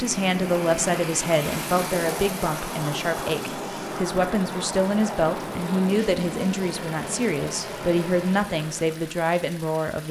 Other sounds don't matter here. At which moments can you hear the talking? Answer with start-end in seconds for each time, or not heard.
0.0-10.0.